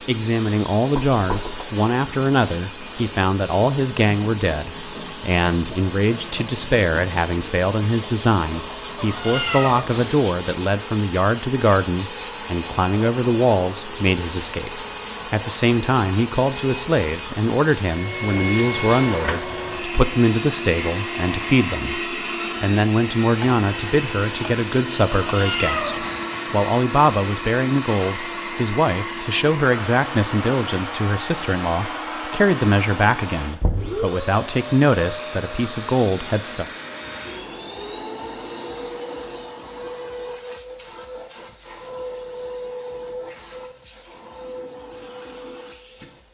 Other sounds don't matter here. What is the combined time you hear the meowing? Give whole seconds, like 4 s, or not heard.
2 s.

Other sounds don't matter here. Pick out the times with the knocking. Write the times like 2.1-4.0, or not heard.
0.9-1.6, 33.6-34.1.